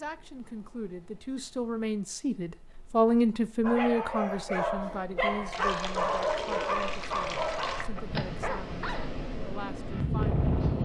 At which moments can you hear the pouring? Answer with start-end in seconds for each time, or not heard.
5.5-7.9.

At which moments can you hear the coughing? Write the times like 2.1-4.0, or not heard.
not heard.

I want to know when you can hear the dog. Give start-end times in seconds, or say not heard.
3.6-9.1.